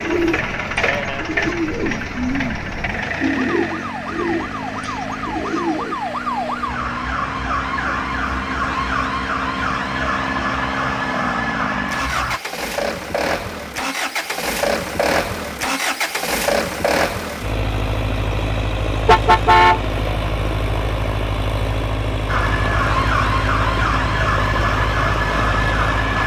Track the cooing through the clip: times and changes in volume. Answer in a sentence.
You can hear the cooing from 0.0 to 6.0 s, getting louder then quieter.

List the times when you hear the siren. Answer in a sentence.
You can hear the siren from 0.0 to 12.4 s and from 22.2 to 26.2 s.